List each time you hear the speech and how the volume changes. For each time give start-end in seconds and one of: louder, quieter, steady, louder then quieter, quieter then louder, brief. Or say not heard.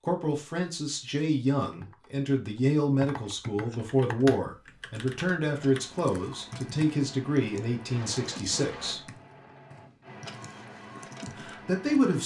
0.0-9.1 steady
11.2-12.2 brief.